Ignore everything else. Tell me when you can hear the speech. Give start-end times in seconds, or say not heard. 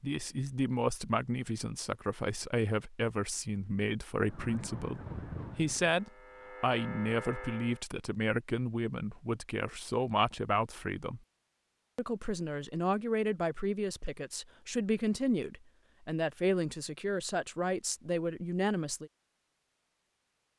0.0-11.2, 11.9-19.1.